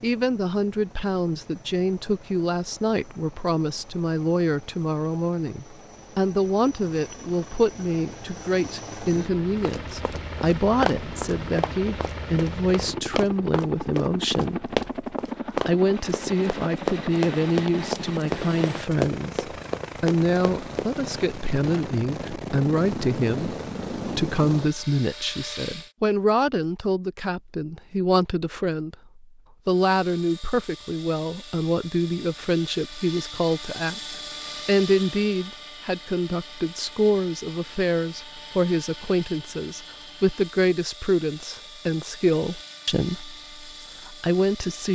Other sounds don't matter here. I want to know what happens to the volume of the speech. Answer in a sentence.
The volume of the speech stays about the same.